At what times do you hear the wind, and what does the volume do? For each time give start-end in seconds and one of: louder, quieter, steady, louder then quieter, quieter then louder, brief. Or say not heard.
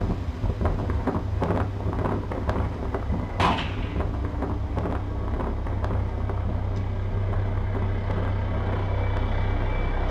0.0-9.8 quieter.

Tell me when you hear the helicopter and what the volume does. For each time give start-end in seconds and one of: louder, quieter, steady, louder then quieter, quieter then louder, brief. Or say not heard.
0.1-10.0 louder.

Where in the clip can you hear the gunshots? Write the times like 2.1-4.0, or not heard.
2.9-4.0.